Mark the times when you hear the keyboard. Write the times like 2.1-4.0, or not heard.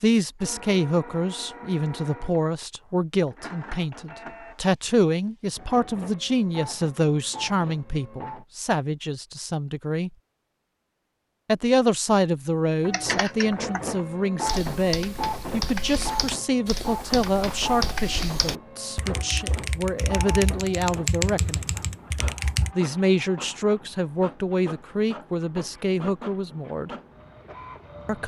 12.8-22.7.